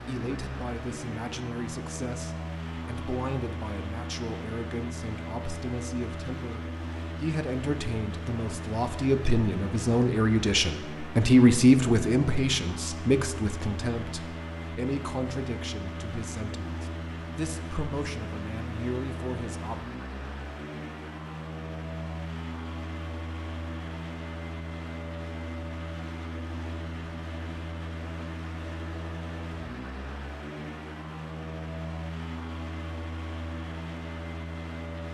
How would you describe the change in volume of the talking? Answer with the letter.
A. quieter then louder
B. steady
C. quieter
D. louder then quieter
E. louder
D.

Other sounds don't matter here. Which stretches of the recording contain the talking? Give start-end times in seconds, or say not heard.
0.1-19.8.